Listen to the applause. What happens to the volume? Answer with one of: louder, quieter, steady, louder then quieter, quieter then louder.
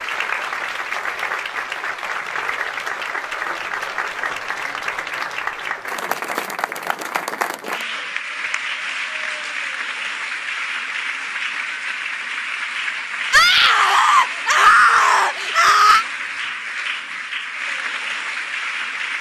steady.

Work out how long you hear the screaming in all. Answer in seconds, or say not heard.
3 s.